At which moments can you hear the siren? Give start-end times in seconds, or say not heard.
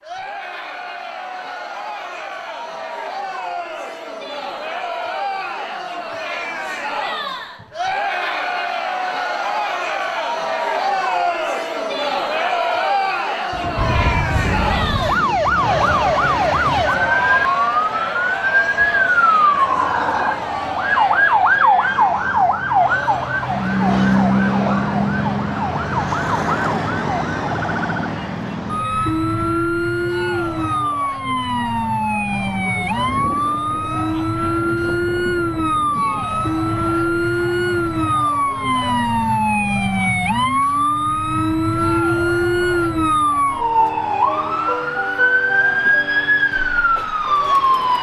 13.8-47.9.